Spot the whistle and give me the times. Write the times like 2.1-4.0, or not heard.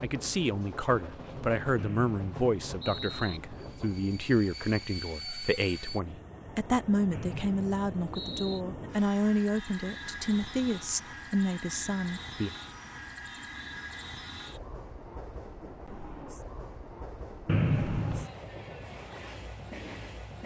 1.8-3.4, 7.1-8.6, 17.4-18.3.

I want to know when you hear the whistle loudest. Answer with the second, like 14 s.
18 s.